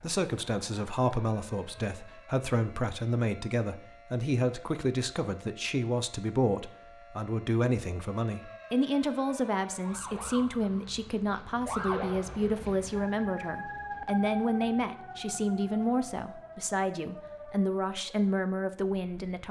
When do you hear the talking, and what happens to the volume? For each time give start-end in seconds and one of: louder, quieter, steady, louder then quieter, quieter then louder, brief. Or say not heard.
0.0-19.4 steady.